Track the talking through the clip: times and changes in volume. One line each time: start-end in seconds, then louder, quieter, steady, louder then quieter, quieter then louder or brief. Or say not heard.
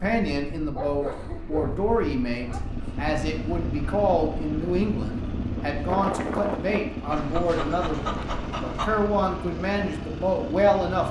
0.0-11.0 steady.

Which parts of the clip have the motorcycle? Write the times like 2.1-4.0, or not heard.
2.5-11.0.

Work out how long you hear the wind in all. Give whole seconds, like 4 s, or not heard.
7 s.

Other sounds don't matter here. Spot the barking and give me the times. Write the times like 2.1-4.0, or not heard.
0.7-2.6, 7.1-9.1.